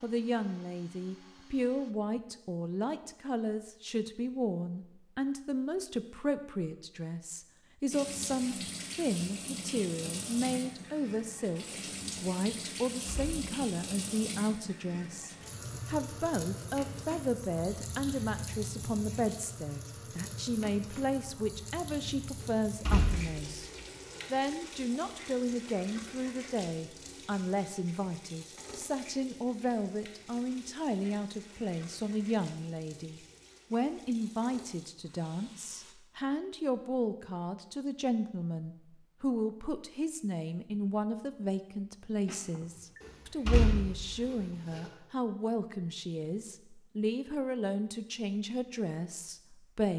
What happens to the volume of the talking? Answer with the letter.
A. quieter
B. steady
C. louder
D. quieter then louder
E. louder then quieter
B.